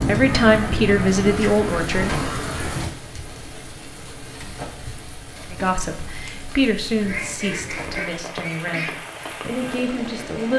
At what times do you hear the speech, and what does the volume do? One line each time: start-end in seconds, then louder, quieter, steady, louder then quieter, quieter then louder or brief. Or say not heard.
0.0-2.3 brief
5.5-10.5 quieter then louder.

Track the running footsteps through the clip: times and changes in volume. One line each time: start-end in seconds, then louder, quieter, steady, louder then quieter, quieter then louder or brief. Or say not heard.
not heard.